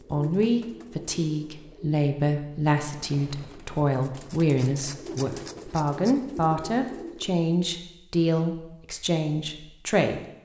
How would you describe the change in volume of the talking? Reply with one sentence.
The volume of the talking stays about the same.